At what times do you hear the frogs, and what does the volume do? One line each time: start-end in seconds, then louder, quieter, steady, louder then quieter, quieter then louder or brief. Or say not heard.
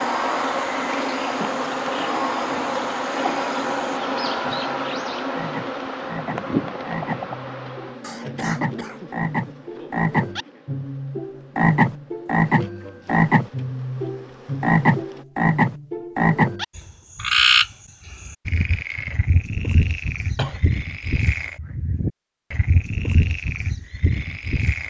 0.0-24.8 louder then quieter.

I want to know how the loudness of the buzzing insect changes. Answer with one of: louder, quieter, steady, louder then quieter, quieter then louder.
quieter.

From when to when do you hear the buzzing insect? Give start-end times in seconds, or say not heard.
0.0-15.2.